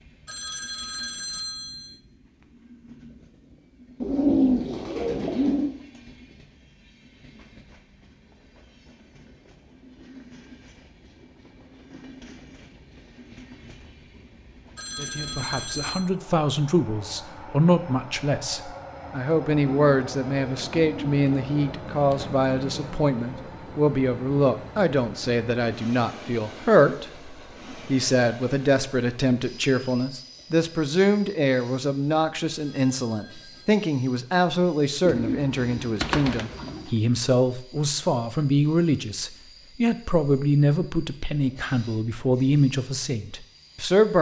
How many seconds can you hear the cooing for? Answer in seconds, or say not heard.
6 s.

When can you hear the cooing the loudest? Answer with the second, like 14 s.
4 s.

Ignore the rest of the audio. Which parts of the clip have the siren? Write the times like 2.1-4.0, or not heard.
not heard.